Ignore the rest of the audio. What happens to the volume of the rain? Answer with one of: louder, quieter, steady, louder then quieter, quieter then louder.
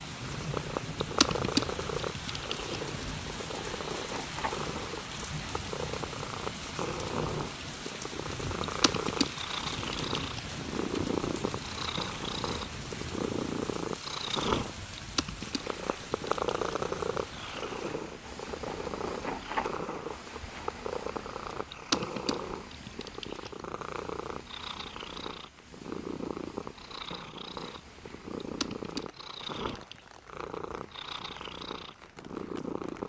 quieter.